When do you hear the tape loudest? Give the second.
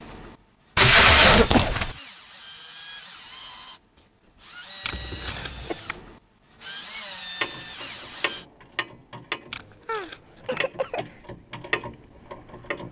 1 s.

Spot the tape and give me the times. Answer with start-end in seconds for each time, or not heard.
0.8-1.9, 4.8-6.0, 9.5-10.6.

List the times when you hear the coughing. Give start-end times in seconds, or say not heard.
1.2-1.9, 4.9-5.8, 9.8-11.2.